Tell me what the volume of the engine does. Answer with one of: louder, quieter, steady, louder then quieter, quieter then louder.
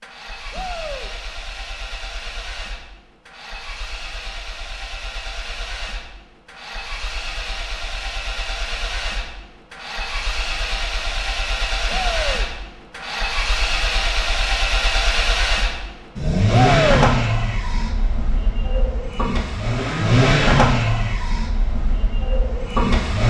louder.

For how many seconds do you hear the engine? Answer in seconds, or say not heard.
23 s.